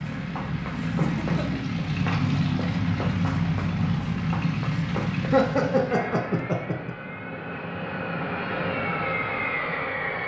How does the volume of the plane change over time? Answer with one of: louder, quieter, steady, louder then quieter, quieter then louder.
quieter then louder.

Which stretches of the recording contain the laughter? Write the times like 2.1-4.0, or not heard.
0.8-1.4, 5.3-7.0.